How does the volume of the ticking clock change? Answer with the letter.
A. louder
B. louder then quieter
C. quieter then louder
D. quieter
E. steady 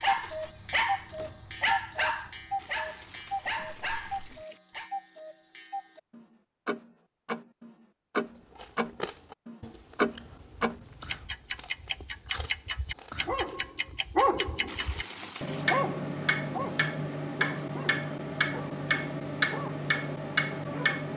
A.